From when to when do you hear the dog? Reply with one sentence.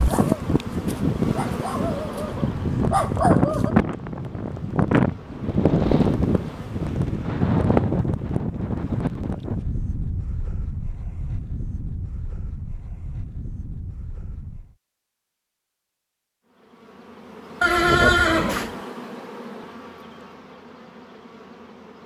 The dog can be heard from 0.0 to 3.8 s.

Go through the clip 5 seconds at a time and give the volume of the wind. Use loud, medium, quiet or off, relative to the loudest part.
loud, loud, quiet, off, off.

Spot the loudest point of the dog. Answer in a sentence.
The loudest moment of the dog is at 3 seconds.